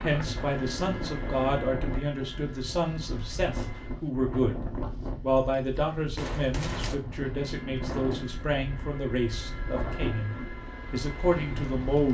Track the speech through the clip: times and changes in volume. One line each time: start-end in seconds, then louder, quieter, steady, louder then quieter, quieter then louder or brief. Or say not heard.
0.0-12.0 steady.